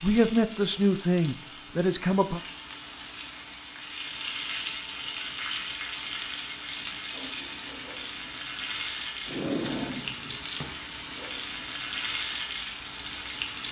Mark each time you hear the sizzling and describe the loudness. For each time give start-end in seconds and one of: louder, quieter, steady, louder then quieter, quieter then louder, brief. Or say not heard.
0.0-13.6 louder.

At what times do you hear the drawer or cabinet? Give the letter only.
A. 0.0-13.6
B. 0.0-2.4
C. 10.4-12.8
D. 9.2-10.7
D.